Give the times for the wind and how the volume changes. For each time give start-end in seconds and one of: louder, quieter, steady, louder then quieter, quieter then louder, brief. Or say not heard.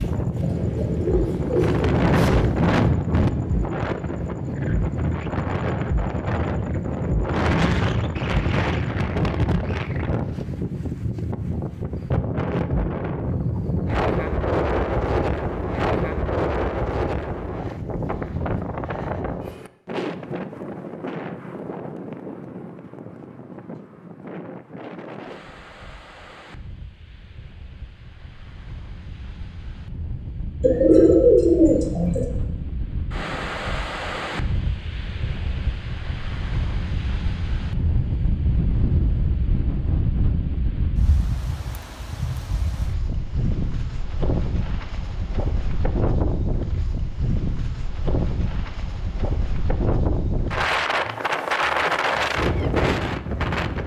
0.0-53.8 quieter then louder.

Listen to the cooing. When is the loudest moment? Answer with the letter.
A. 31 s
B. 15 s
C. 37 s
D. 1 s
A.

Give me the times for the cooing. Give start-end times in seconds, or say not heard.
0.4-2.3, 30.6-32.2.